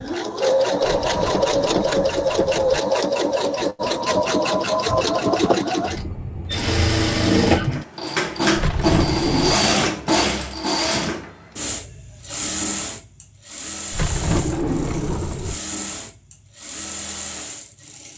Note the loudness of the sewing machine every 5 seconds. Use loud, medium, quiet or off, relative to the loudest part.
loud, loud, medium, quiet.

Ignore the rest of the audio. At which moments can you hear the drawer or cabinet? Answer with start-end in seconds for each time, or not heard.
0.8-2.8, 8.6-9.6, 13.9-15.6.